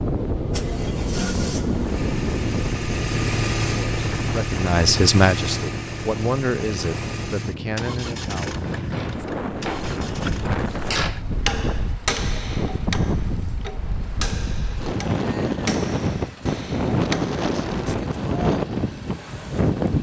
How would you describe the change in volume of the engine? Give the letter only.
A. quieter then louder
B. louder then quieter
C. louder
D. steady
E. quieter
E.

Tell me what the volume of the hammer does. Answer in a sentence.
The volume of the hammer goes up, then down.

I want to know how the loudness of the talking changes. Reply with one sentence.
The volume of the talking goes down.